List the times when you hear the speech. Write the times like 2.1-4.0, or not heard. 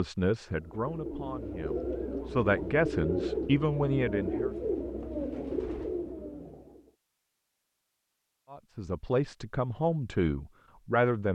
0.0-4.5, 8.5-11.2.